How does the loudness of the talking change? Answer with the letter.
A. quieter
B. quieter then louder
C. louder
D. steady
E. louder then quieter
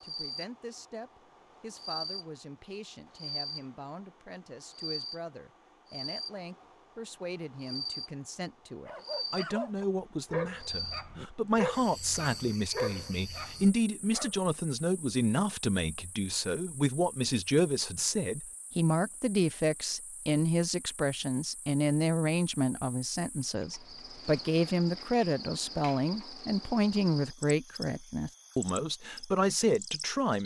C.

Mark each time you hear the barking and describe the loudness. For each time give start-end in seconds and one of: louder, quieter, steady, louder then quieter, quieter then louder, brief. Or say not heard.
8.8-14.3 quieter.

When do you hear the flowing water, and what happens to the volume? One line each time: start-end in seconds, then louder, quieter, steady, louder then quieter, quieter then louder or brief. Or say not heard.
not heard.